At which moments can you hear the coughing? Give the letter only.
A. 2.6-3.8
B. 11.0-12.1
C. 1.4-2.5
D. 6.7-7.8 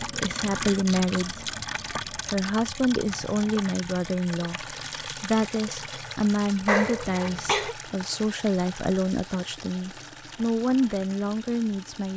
D.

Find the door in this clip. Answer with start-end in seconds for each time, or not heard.
not heard.